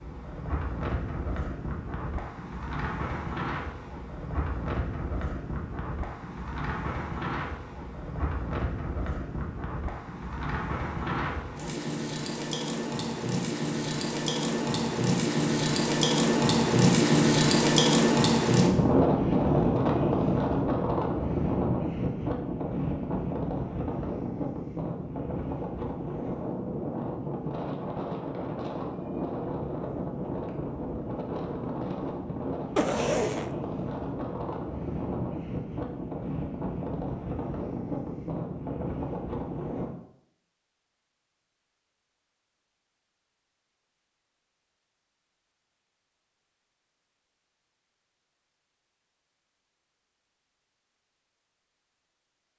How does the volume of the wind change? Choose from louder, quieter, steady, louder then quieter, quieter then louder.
louder then quieter.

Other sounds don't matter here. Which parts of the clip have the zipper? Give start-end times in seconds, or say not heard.
32.8-33.5.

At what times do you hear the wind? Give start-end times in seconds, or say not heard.
0.0-40.0.